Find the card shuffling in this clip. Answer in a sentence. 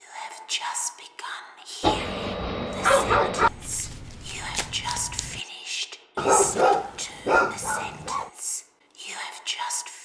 The card shuffling can be heard from 3.4 to 5.4 s.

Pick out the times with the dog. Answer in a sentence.
You can hear the dog from 1.8 to 3.5 s and from 6.2 to 8.3 s.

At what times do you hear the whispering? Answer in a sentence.
You can hear the whispering from 0.0 to 10.0 s.